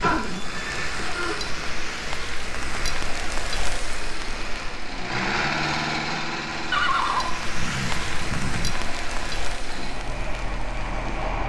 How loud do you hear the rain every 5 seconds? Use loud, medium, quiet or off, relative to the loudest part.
loud, loud, medium.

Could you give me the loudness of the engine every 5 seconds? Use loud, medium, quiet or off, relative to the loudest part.
medium, loud, loud.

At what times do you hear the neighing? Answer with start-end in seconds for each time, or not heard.
0.0-1.6, 6.7-8.8.